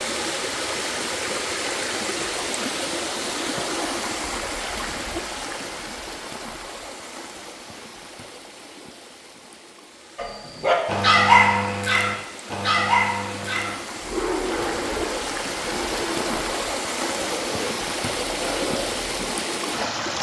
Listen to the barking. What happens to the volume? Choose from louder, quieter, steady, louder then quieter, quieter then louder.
quieter.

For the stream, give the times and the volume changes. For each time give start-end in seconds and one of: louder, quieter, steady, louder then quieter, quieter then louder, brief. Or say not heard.
0.0-20.1 quieter then louder.